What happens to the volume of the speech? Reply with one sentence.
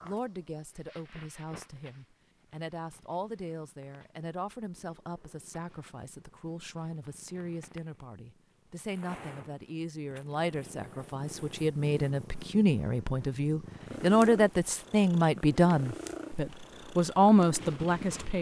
The loudness of the speech goes up.